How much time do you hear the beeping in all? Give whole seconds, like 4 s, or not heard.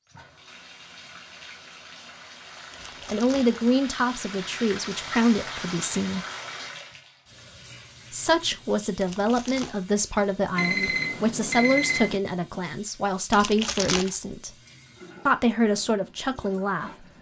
2 s.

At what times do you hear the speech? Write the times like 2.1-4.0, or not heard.
3.0-6.2, 8.1-14.6, 15.2-17.1.